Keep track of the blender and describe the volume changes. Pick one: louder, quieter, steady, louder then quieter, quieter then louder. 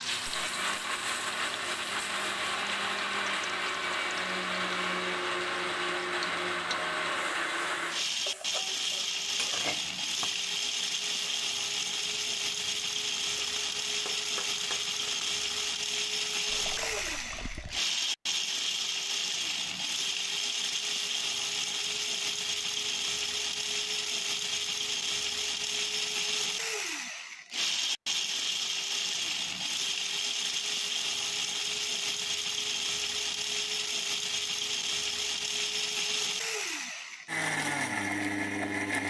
steady.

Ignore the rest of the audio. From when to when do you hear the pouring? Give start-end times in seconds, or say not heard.
16.4-17.8.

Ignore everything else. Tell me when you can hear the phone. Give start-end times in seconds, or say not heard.
not heard.